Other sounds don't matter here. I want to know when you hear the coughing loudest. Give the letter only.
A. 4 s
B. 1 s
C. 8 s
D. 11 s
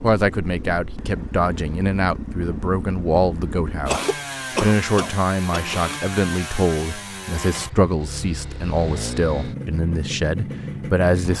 A.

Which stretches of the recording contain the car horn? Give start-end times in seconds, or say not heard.
not heard.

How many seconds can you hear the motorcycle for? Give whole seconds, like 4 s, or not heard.
11 s.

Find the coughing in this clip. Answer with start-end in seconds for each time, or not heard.
3.9-5.8.